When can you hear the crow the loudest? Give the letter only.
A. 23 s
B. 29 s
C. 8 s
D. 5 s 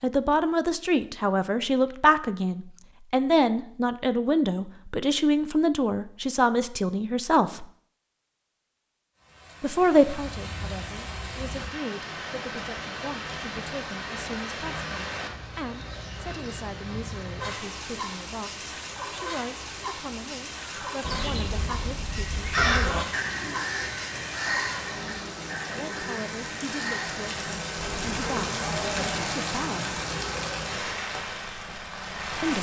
A.